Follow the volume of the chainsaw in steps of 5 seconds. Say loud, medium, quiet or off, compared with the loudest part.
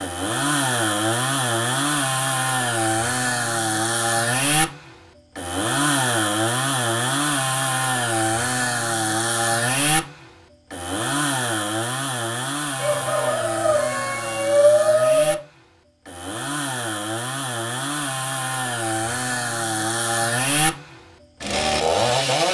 loud, loud, medium, medium, loud.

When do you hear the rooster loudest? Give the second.
15 s.